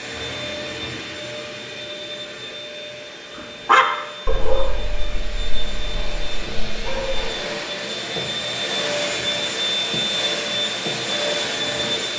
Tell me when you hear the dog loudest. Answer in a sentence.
The volume of the dog peaks at 4 seconds.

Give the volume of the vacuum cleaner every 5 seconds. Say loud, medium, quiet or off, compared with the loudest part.
medium, loud, loud.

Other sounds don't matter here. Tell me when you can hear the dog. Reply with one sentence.
The dog can be heard from 3.6 to 7.2 s.